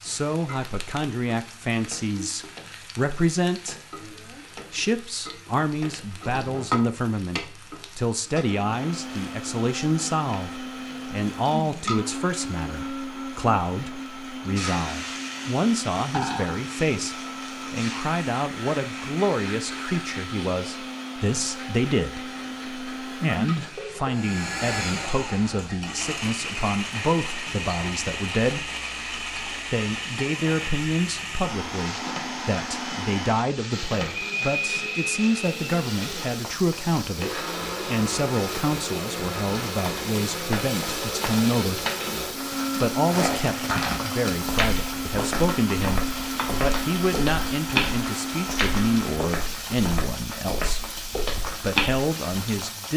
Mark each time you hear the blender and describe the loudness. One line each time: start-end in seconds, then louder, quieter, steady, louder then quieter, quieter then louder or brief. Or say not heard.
8.4-49.4 steady.